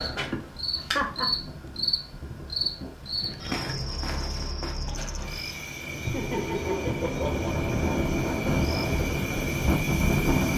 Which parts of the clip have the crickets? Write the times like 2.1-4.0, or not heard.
0.0-10.5.